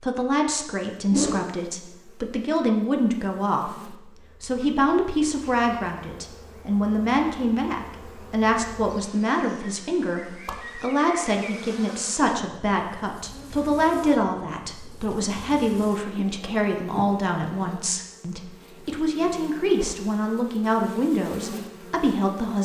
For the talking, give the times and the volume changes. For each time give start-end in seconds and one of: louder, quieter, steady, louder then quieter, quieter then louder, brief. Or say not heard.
0.0-22.6 steady.